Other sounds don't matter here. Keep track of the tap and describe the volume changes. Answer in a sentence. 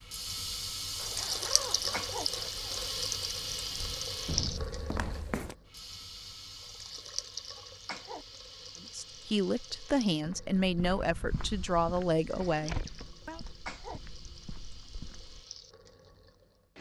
The loudness of the tap goes down.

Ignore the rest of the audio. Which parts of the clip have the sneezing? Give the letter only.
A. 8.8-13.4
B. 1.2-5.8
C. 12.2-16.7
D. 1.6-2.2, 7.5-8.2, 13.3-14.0
D.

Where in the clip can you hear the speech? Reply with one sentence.
The speech can be heard from 8.8 to 13.4 s.